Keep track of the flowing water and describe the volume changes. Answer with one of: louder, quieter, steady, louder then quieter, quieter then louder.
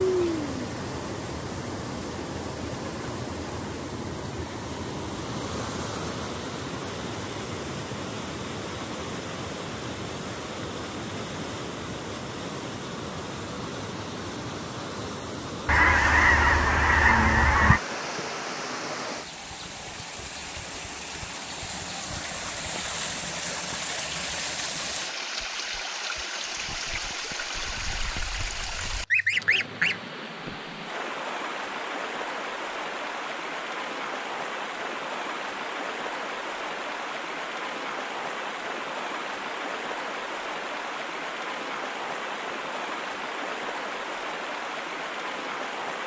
steady.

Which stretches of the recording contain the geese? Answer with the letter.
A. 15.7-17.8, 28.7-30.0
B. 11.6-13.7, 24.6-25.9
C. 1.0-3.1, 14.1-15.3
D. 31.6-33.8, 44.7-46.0
A.